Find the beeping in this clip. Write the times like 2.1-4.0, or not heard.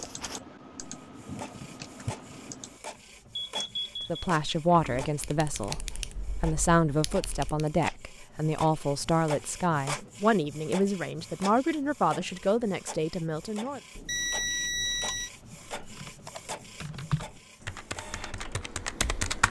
3.5-4.3, 13.9-15.3.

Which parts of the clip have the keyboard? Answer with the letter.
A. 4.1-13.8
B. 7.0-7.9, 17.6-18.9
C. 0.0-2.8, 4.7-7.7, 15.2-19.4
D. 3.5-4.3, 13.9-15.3
C.